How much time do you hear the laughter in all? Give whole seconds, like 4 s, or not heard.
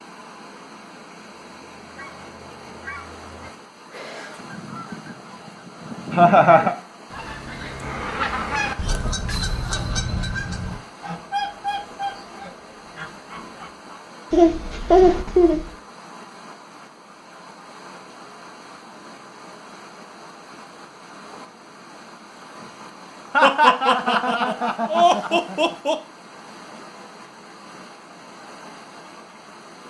5 s.